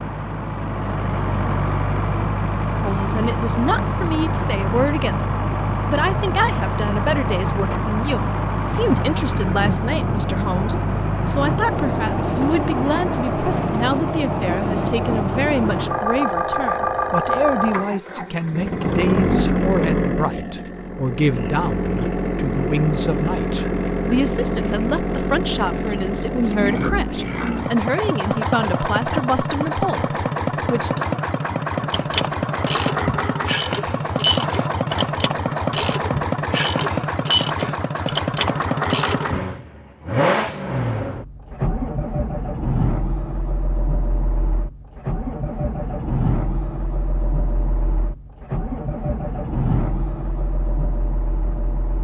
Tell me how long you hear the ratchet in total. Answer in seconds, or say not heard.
8 s.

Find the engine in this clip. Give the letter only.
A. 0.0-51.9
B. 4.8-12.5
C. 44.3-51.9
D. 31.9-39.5
A.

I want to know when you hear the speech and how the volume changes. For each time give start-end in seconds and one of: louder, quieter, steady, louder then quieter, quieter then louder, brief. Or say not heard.
2.8-31.1 steady.